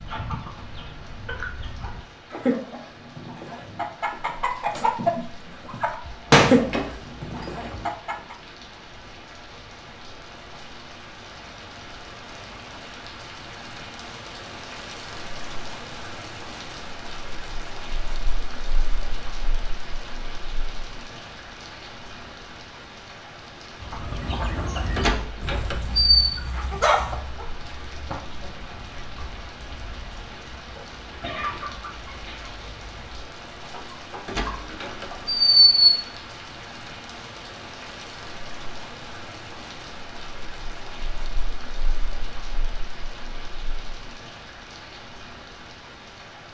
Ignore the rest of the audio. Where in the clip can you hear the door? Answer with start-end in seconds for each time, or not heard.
6.0-7.8, 24.9-26.3, 34.2-35.8.